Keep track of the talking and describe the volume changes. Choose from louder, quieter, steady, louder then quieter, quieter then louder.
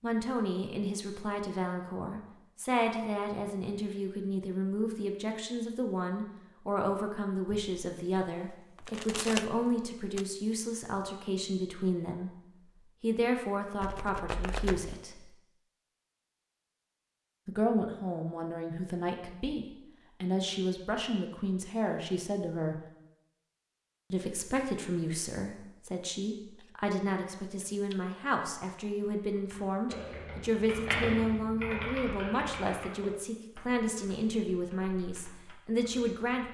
steady.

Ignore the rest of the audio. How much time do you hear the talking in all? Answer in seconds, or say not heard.
33 s.